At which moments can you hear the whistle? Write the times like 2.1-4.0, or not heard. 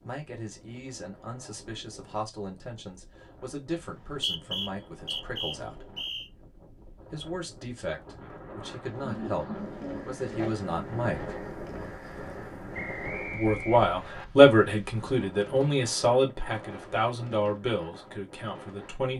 3.8-6.3, 12.7-14.2.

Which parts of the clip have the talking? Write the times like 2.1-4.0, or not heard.
0.0-5.9, 7.1-11.3, 13.3-19.1.